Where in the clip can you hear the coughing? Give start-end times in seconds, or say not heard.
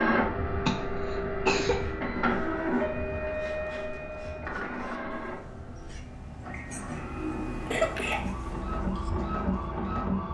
0.7-1.8, 6.9-8.3.